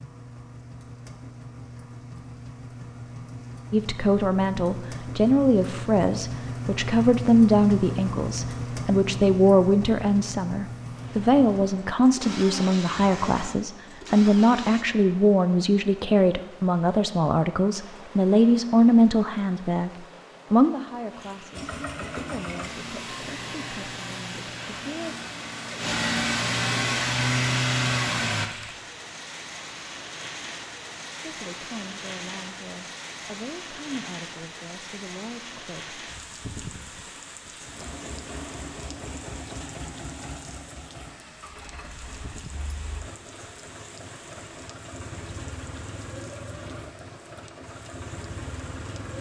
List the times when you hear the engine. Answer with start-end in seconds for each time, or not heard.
0.0-14.8, 21.5-28.4, 37.6-49.1.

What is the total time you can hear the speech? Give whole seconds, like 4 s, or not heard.
26 s.